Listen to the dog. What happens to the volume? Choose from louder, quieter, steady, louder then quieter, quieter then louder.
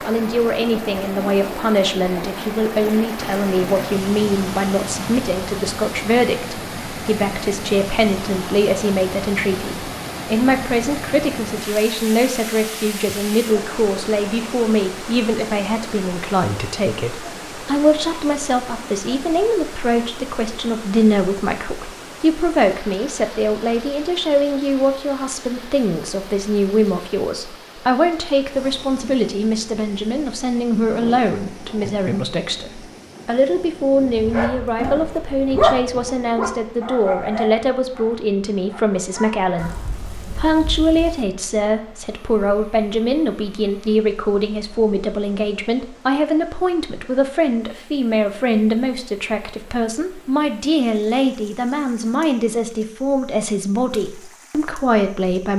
louder then quieter.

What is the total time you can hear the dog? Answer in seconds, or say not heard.
6 s.